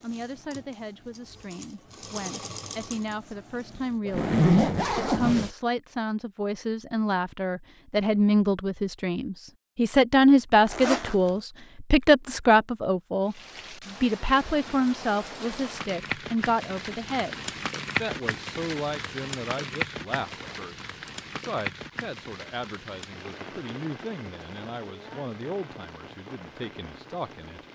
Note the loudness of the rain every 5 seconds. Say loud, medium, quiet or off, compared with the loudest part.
off, off, medium, loud, medium, medium.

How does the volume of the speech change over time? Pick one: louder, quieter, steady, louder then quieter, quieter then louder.
louder then quieter.